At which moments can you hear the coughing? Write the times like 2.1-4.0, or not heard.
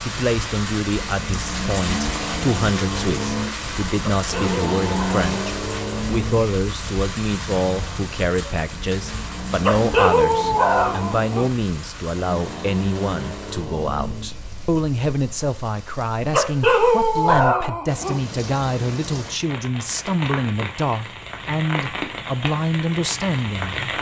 not heard.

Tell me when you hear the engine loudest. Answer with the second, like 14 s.
5 s.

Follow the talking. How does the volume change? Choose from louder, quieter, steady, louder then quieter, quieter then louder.
steady.